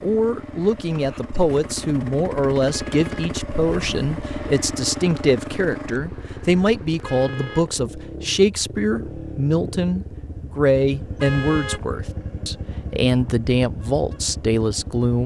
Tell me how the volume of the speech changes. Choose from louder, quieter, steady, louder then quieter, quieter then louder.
steady.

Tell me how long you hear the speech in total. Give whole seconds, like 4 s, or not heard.
15 s.